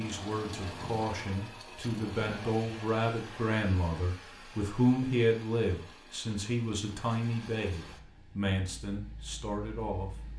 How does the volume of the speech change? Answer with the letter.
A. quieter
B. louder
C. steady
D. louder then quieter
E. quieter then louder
D.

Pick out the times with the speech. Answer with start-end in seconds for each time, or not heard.
0.0-10.2.